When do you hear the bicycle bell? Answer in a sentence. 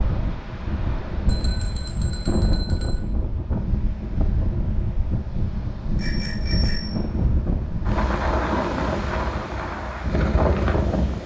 You can hear the bicycle bell from 1.2 to 3.0 s and from 6.0 to 7.0 s.